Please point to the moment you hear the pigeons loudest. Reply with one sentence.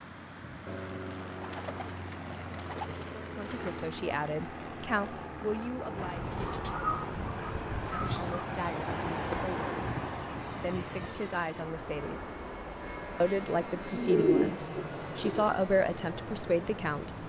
The volume of the pigeons peaks at 14 seconds.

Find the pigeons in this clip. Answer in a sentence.
The pigeons can be heard from 1.4 to 3.9 s, from 6.0 to 8.4 s and from 13.6 to 15.5 s.